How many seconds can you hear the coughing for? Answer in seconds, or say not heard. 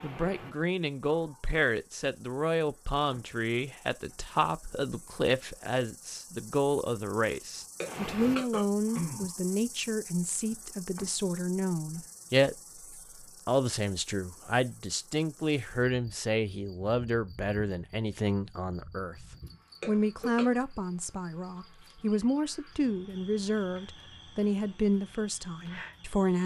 2 s.